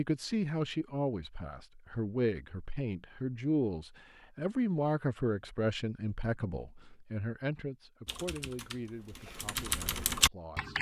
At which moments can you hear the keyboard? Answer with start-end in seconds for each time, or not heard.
8.1-10.7.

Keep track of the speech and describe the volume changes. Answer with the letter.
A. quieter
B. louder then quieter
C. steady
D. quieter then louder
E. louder
A.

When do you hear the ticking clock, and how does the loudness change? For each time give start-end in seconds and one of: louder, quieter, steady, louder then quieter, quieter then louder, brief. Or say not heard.
not heard.